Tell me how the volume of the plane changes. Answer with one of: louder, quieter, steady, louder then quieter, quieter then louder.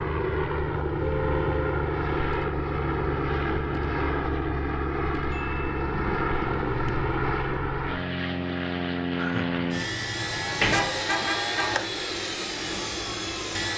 steady.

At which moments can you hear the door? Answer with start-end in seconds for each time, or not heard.
10.2-11.2.